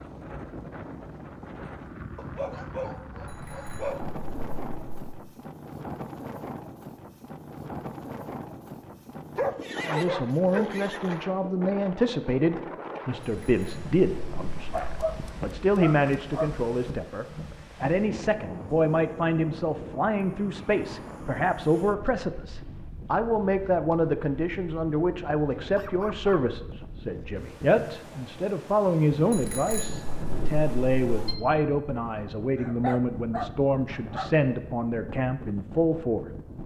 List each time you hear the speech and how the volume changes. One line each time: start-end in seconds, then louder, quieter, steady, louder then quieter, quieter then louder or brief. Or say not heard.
9.8-36.2 steady.